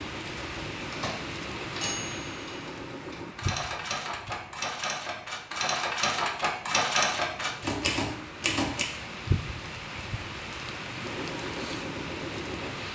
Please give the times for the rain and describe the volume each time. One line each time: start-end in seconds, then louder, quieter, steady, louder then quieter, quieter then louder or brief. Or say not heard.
0.0-12.9 quieter then louder.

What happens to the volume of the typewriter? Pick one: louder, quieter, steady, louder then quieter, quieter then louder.
louder.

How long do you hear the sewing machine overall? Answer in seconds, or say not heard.
5 s.